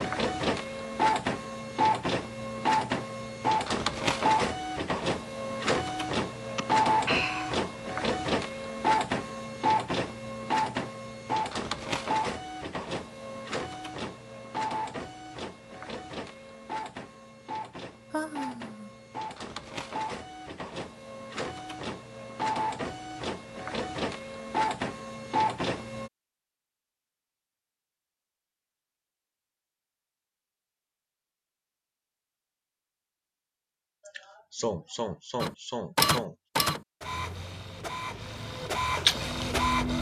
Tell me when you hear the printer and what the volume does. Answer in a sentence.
You can hear the printer from 0.0 to 26.1 s, getting quieter then louder; and from 35.4 to 39.9 s, getting quieter then louder.